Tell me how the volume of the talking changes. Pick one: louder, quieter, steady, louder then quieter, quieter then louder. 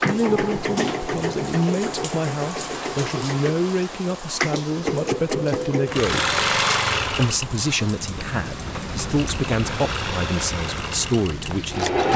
steady.